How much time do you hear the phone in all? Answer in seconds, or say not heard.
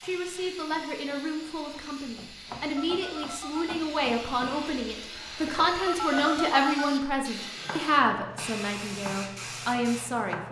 2 s.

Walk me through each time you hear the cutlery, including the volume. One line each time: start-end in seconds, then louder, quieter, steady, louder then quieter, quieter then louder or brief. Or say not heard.
not heard.